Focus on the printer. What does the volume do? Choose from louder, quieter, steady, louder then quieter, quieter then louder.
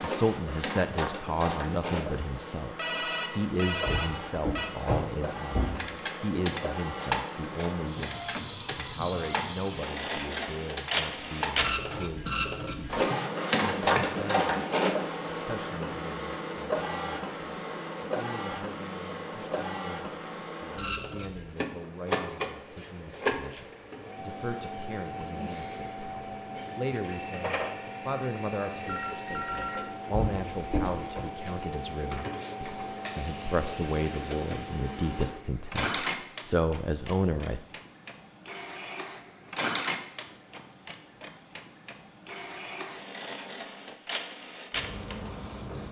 louder then quieter.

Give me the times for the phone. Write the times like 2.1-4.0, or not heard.
2.8-4.7, 28.9-29.9.